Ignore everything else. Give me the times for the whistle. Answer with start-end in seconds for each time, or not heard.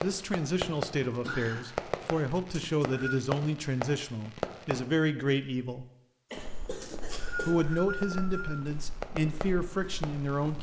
2.6-3.2, 6.8-8.7.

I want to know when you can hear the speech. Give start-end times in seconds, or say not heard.
0.0-5.8, 7.5-10.5.